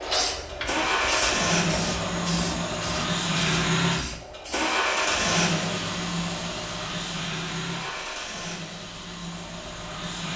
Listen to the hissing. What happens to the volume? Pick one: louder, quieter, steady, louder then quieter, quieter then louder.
quieter.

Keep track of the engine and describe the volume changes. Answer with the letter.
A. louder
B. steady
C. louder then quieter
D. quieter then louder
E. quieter
E.